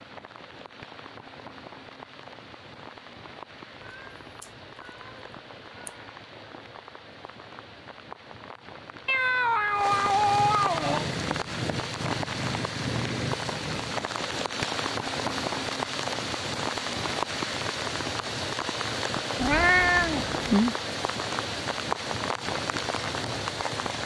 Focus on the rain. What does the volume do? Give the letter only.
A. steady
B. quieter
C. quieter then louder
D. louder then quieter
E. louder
E.